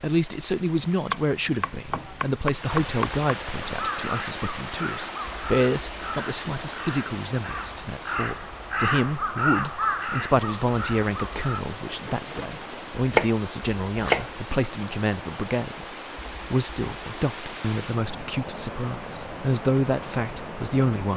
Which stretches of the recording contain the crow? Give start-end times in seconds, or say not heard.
3.6-11.7.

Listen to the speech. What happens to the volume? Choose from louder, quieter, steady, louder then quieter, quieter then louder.
steady.